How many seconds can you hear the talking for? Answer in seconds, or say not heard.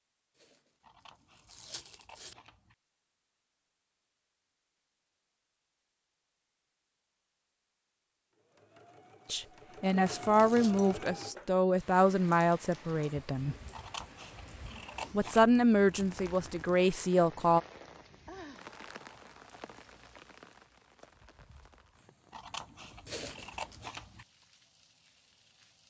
7 s.